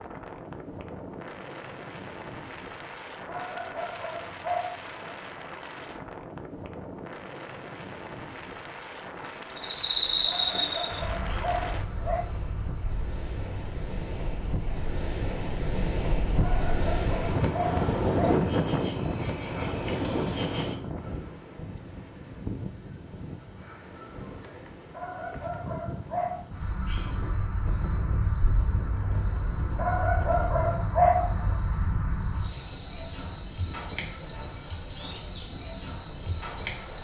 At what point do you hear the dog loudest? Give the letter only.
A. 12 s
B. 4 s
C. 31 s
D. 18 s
C.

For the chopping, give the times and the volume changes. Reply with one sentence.
The chopping can't be heard in this clip.